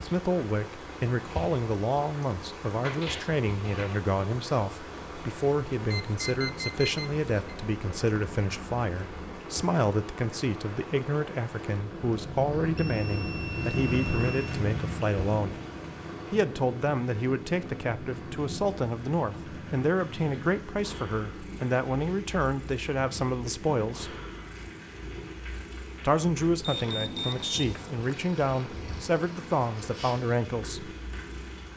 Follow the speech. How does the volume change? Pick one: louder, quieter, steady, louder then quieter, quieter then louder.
steady.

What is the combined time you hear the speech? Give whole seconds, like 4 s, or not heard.
28 s.